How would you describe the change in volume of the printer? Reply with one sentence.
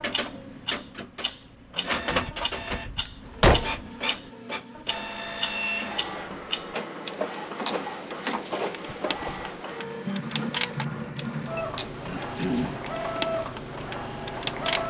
The loudness of the printer stays about the same.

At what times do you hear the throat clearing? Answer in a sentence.
You can hear the throat clearing from 1.8 to 2.4 s and from 12.1 to 12.8 s.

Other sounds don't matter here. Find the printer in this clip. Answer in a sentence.
You can hear the printer from 0.0 to 14.8 s.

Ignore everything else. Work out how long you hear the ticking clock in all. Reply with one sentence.
The ticking clock can be heard for 15 seconds in total.